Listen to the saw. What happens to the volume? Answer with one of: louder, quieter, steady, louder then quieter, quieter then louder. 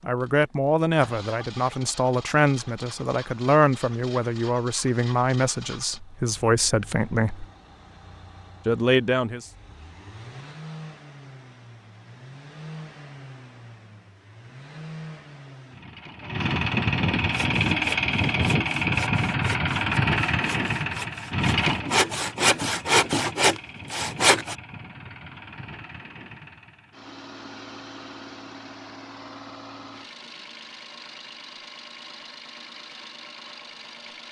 louder.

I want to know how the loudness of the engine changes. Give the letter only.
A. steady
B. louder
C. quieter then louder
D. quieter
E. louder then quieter
E.